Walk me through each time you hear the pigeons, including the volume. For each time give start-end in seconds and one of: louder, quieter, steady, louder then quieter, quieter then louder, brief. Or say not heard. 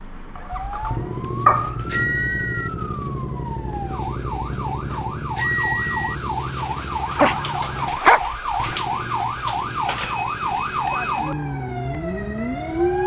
not heard.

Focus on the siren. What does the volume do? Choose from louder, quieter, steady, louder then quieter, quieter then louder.
louder.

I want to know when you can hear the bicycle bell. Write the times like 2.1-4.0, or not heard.
1.9-2.7, 5.3-6.2, 10.0-11.1.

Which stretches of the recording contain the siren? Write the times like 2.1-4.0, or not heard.
0.0-13.0.